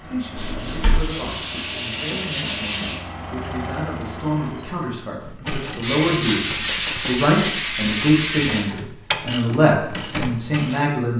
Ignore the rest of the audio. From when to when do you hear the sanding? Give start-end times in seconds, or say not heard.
0.3-3.0, 5.8-8.7.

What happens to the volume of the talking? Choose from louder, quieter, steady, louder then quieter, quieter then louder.
louder.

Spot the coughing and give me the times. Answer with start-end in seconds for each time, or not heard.
not heard.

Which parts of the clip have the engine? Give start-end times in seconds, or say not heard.
0.0-5.1.